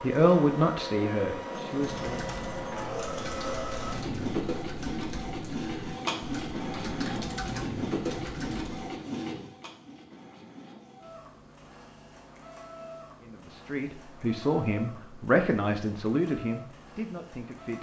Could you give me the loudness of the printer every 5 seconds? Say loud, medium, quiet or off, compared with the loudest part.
loud, loud, quiet, quiet.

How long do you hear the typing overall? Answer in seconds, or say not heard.
7 s.